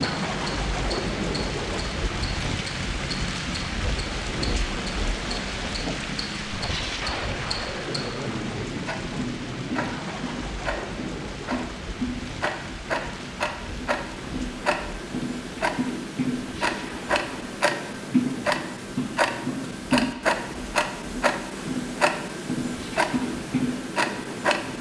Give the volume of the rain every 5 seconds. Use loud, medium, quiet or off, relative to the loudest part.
loud, loud, medium, quiet, quiet.